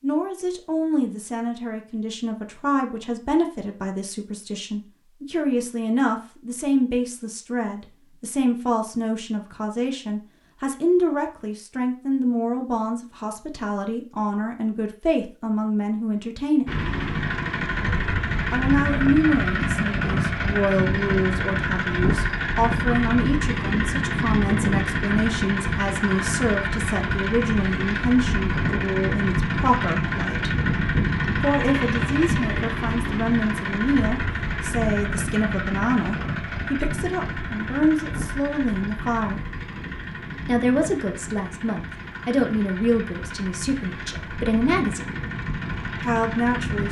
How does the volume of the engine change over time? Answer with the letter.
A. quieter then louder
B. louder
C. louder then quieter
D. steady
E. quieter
E.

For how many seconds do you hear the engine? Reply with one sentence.
You can hear the engine for 30 seconds altogether.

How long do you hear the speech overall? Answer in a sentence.
The speech can be heard for 42 seconds in total.